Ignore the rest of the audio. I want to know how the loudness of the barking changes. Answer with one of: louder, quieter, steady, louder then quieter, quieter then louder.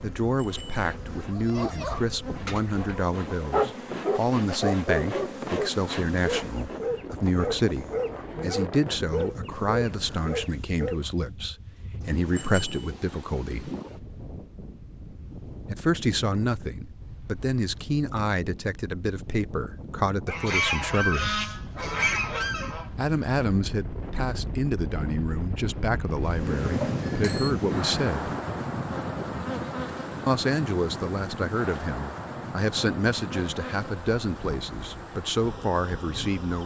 louder then quieter.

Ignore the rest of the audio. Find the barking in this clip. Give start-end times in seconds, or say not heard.
1.3-11.1.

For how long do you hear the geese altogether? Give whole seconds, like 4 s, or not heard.
3 s.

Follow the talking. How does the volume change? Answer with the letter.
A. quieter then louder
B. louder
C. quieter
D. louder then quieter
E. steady
E.